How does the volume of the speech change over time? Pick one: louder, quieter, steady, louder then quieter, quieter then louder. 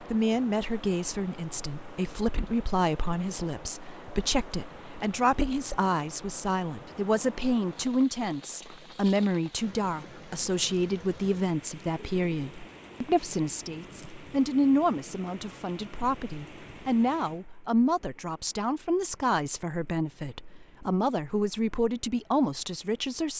steady.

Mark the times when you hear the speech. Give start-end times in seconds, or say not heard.
0.0-23.3.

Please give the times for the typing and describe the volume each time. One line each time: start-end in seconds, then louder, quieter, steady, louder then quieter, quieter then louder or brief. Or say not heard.
not heard.